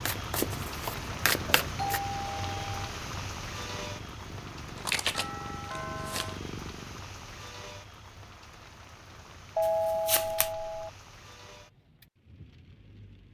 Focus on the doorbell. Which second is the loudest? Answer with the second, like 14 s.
10 s.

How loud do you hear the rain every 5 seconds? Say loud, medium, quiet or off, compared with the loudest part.
loud, medium, quiet.